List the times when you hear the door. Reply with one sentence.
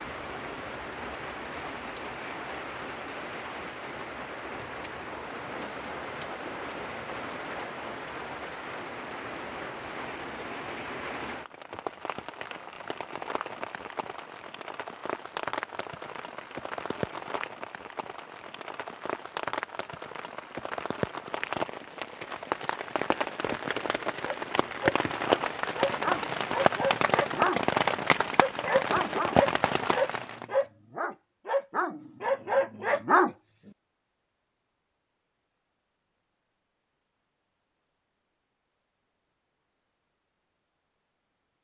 You can't hear the door here.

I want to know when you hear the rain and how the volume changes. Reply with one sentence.
You can hear the rain from 0.0 to 30.4 s, getting louder.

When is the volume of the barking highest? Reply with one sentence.
The volume of the barking peaks at 33 seconds.